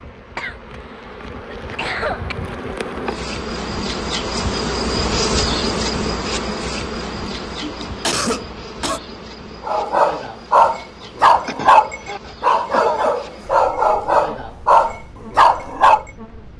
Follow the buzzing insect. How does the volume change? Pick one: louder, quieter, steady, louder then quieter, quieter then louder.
louder then quieter.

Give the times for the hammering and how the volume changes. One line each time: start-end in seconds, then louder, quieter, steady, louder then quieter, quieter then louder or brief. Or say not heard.
not heard.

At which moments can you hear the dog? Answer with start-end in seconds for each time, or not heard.
9.7-16.1.